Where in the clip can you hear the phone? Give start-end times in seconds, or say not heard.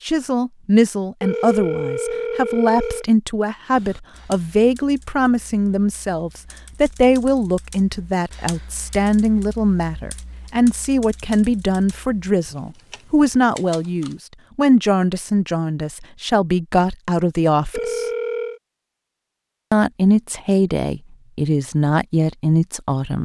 1.2-3.0, 17.7-18.6.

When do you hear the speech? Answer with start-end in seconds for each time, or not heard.
0.1-18.1, 19.7-23.2.